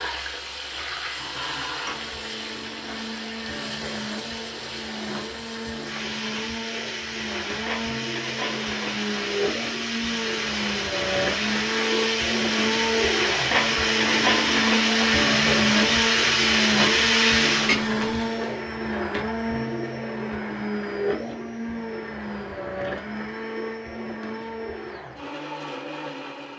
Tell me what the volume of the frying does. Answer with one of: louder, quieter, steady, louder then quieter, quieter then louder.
louder.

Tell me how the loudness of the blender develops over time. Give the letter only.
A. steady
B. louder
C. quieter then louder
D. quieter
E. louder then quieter
E.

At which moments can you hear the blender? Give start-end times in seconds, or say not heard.
0.0-26.5.